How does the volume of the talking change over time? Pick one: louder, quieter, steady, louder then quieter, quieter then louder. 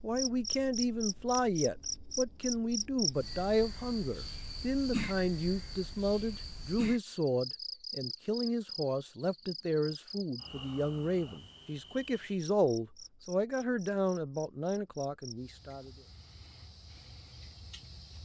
steady.